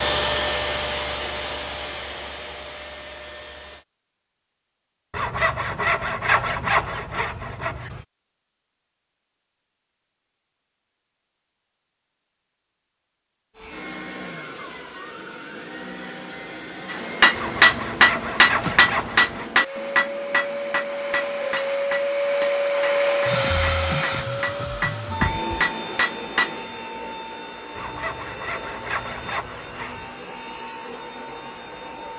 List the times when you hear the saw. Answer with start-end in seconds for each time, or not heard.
5.1-8.1, 17.4-19.5, 27.8-30.1.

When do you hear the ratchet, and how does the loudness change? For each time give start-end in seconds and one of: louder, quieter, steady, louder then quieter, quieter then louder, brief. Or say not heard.
not heard.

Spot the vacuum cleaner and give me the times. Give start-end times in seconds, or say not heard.
0.0-3.9, 13.6-32.1.